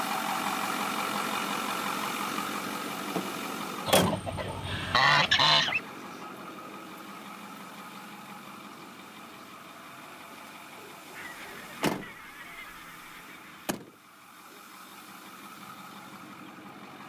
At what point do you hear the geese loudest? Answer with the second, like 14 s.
5 s.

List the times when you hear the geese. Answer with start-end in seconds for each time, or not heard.
3.9-5.8, 11.1-13.7.